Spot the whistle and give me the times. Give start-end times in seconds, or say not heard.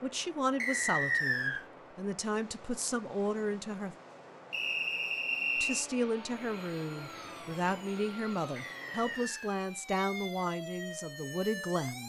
0.6-1.6, 4.5-5.8, 8.6-9.6.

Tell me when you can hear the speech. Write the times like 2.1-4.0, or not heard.
0.0-4.0, 5.5-12.0.